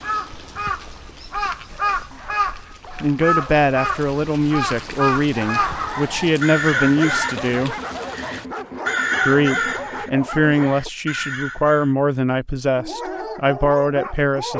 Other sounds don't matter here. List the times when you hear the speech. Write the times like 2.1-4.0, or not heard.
3.0-7.8, 9.2-14.5.